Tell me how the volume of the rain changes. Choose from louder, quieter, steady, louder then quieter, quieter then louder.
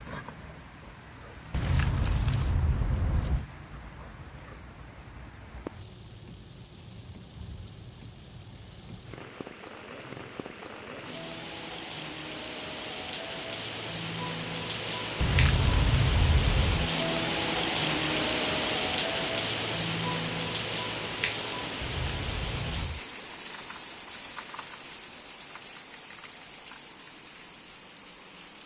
louder then quieter.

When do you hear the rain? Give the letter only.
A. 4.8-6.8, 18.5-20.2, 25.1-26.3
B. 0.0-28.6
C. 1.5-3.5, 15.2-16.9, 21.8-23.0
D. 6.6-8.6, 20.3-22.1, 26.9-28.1
B.